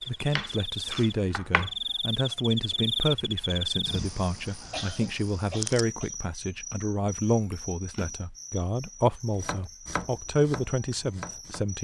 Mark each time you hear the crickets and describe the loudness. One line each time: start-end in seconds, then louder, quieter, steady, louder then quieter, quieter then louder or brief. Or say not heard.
0.0-11.7 quieter.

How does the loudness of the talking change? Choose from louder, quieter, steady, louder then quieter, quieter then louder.
steady.